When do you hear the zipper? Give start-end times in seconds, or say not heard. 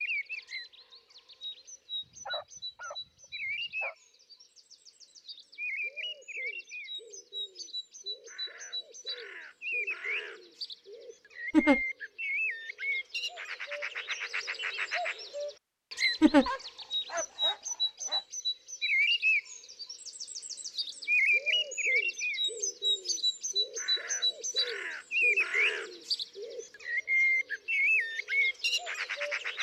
not heard.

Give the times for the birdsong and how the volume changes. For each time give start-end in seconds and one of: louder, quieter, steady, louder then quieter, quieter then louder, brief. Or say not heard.
0.0-29.5 louder.